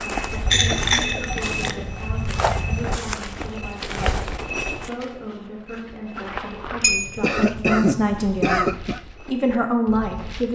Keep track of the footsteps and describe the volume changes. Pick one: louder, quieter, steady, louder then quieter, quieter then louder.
quieter.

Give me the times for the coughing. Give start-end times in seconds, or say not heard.
0.7-1.3, 6.8-9.0.